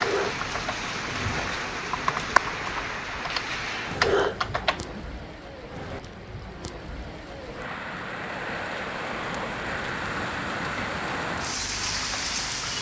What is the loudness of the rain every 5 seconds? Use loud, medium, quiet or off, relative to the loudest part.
loud, medium, loud.